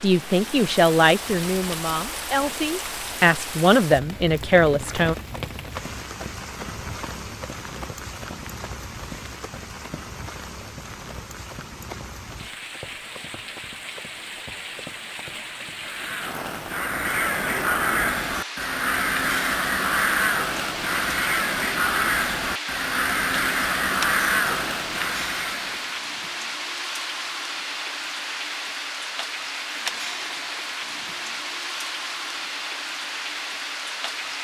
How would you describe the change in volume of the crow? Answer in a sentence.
The loudness of the crow stays about the same.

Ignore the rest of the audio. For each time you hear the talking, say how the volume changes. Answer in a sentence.
You can hear the talking from 0.0 to 5.2 s, getting quieter then louder.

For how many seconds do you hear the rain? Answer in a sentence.
You can hear the rain for 34 seconds altogether.